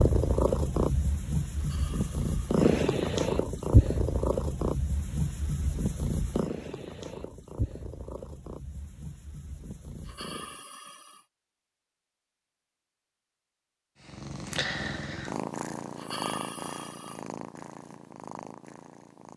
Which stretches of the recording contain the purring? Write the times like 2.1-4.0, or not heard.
0.0-10.6, 14.1-19.3.